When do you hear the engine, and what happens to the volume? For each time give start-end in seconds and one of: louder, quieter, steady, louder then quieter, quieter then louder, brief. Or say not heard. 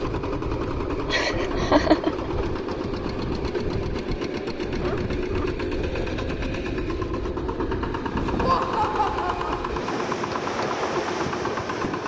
0.0-12.0 steady.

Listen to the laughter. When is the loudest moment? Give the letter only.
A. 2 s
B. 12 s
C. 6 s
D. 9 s
A.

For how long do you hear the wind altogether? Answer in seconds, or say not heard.
12 s.